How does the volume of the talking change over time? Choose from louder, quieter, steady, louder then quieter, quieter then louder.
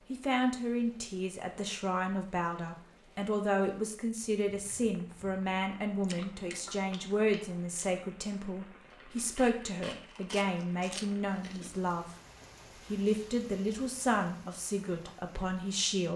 steady.